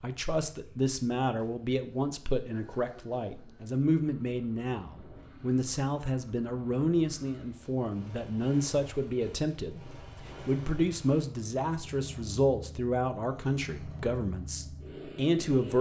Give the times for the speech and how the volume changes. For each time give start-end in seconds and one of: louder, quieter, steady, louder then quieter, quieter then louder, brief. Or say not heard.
0.0-15.7 steady.